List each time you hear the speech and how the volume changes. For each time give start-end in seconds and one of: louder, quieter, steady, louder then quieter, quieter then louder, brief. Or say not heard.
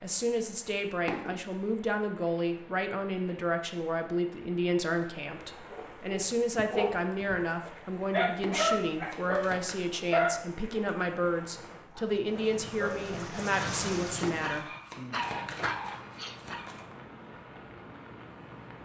0.0-14.7 steady.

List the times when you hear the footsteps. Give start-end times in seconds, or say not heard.
not heard.